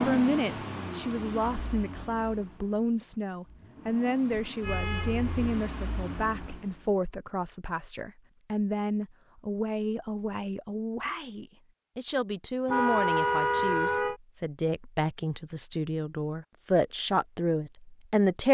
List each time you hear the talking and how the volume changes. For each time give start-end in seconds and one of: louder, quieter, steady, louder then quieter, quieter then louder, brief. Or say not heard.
0.1-18.4 steady.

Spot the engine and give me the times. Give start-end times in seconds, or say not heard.
0.0-6.9.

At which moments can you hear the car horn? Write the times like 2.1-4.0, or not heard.
4.5-5.5, 12.7-14.2.